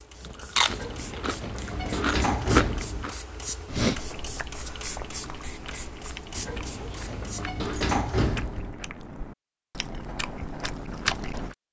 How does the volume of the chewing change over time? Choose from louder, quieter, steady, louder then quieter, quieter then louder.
quieter then louder.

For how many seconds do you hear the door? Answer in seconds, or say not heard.
5 s.